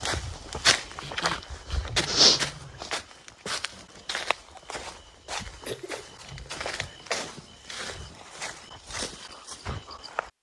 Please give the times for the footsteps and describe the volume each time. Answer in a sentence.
The footsteps can be heard from 0.0 to 10.3 s, getting quieter.